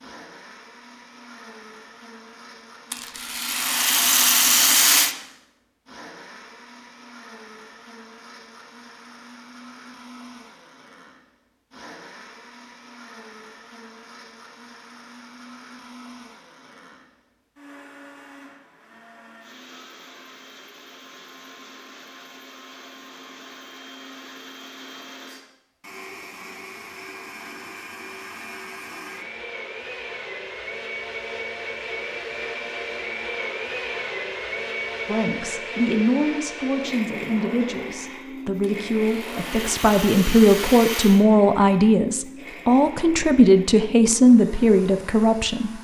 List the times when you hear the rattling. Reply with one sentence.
You can hear the rattling from 2.9 to 5.2 s and from 38.6 to 41.2 s.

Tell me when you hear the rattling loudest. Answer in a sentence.
The loudest moment of the rattling is at 5 seconds.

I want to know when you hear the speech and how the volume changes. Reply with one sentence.
You can hear the speech from 35.0 to 45.7 s, getting louder.